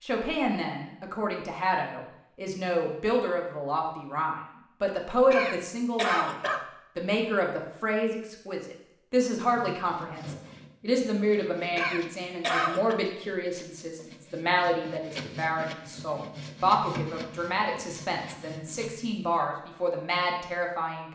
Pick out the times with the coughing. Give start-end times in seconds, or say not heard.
5.3-6.6, 11.8-13.0.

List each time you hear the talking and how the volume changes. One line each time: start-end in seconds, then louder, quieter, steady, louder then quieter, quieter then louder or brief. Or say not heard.
0.0-6.3 louder
7.0-21.1 steady.